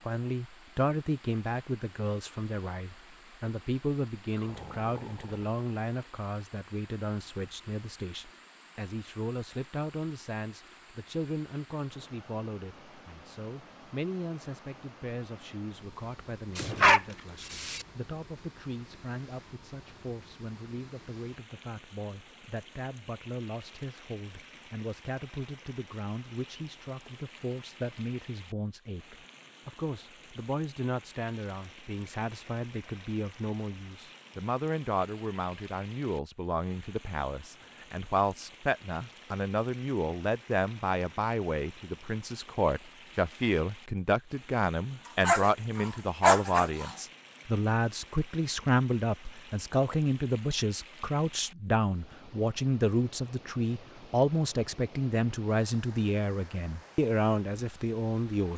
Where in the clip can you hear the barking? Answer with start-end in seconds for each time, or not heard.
16.6-17.9, 45.2-47.0.